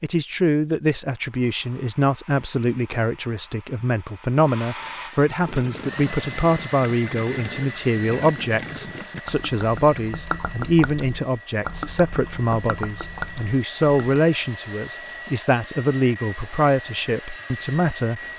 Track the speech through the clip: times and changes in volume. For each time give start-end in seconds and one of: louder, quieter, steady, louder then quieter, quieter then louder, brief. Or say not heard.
0.0-18.3 steady.